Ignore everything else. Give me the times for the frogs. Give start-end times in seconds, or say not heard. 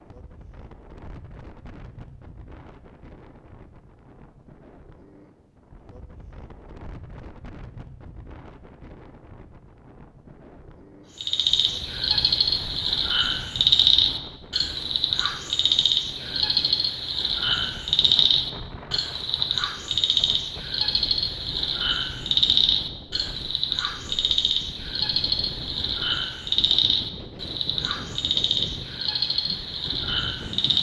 11.2-30.7.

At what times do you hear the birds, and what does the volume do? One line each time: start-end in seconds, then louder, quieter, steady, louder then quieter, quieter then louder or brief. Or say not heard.
not heard.